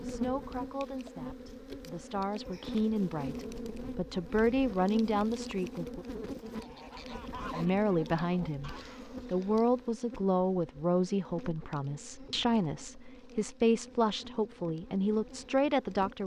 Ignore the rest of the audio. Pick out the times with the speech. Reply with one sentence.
You can hear the speech from 0.0 to 6.0 s and from 7.5 to 16.2 s.